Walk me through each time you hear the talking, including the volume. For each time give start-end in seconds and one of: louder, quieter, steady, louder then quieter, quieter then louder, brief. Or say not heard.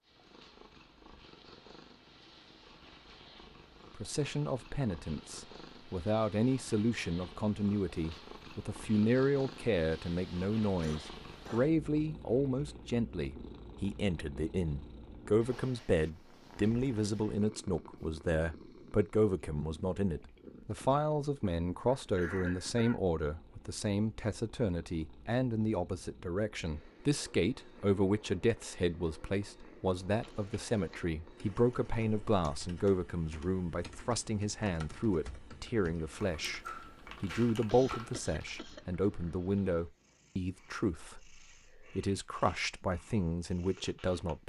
4.0-44.4 steady.